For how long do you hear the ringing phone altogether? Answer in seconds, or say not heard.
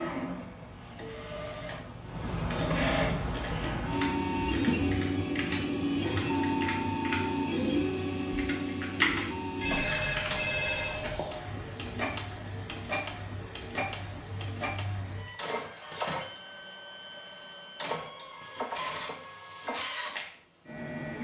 2 s.